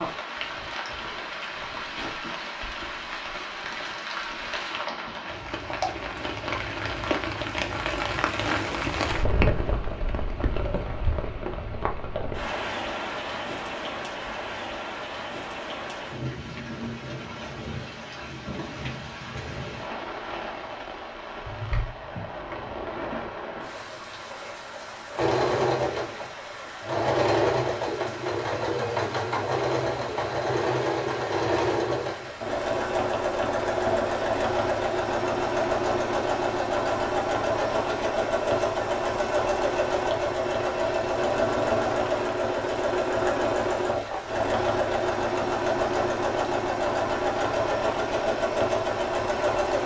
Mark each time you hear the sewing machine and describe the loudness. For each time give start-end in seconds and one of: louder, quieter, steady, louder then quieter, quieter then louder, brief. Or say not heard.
25.1-49.8 steady.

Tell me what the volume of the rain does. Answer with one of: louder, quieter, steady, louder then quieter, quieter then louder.
quieter.